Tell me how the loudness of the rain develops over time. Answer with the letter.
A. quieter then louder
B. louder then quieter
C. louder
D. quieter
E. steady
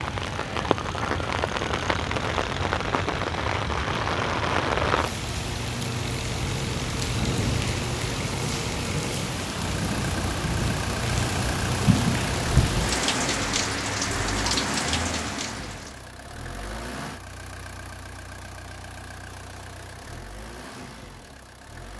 E.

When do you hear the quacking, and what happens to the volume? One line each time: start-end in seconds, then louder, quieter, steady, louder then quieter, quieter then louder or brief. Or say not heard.
not heard.